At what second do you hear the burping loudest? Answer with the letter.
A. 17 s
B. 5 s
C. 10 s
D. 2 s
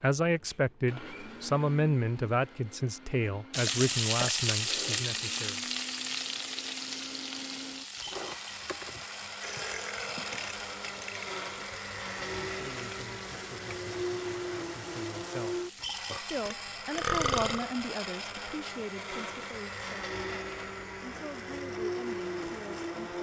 A.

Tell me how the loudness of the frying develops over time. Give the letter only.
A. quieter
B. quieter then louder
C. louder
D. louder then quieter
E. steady
A.